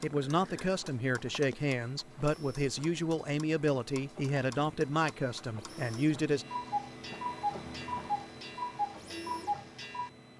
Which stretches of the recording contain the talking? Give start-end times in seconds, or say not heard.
0.0-6.5.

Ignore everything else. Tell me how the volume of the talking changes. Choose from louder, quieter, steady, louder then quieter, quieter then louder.
steady.